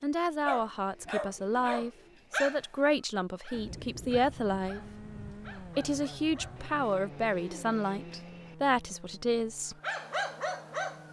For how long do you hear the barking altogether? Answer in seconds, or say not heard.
8 s.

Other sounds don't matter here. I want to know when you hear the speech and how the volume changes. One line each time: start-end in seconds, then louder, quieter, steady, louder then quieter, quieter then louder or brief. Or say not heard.
0.0-4.8 steady
5.6-9.8 steady.